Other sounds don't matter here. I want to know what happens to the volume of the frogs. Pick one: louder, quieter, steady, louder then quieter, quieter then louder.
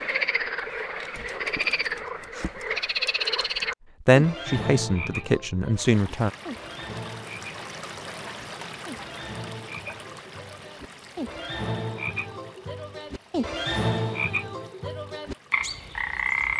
quieter then louder.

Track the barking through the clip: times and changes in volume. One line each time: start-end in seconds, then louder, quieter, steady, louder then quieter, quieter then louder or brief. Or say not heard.
not heard.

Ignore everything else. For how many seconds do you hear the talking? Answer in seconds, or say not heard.
2 s.